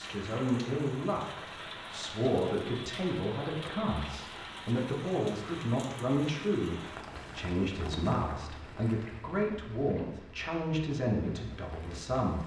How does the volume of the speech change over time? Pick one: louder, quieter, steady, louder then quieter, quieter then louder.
steady.